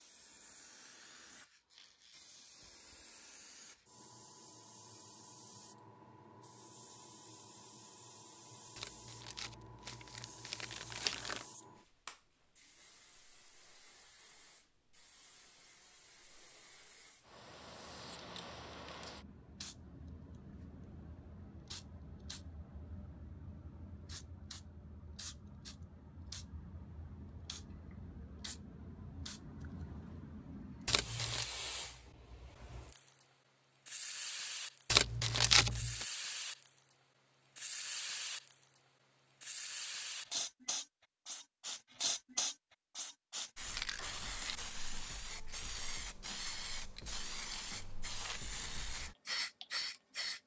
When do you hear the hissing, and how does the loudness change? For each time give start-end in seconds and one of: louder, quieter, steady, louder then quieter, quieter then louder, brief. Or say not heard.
0.0-50.4 louder.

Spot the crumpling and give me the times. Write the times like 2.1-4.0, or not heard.
8.8-11.4, 30.9-31.5, 34.9-36.0.